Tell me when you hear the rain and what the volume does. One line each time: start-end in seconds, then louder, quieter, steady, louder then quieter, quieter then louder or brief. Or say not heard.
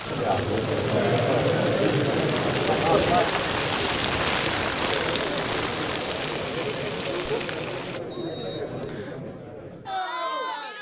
0.0-8.0 louder then quieter.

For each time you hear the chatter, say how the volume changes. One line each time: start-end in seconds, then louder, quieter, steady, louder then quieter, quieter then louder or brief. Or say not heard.
0.0-10.7 quieter.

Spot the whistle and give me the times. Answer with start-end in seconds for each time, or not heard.
8.1-9.2.